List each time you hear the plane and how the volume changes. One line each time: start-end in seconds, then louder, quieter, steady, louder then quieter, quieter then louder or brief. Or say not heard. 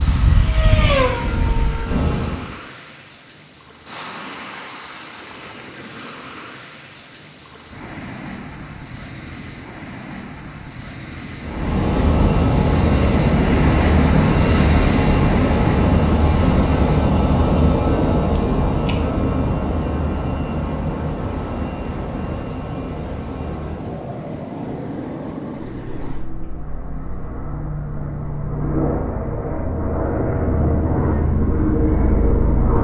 0.0-2.5 brief
11.4-32.7 quieter then louder.